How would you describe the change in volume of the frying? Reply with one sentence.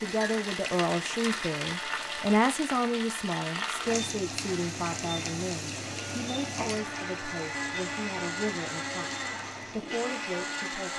The loudness of the frying goes down.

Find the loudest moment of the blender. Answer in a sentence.
The loudest moment of the blender is at 8 seconds.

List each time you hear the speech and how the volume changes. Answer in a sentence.
The speech can be heard from 0.0 to 10.9 s, getting quieter.